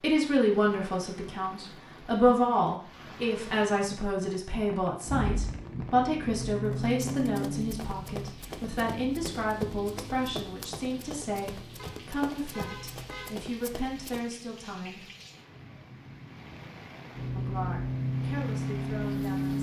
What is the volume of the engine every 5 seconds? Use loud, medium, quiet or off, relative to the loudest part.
off, medium, quiet, loud.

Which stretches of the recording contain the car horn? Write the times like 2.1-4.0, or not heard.
11.8-13.3.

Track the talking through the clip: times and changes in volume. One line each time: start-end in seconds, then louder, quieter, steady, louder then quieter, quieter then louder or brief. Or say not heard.
0.0-15.1 quieter
17.4-19.5 brief.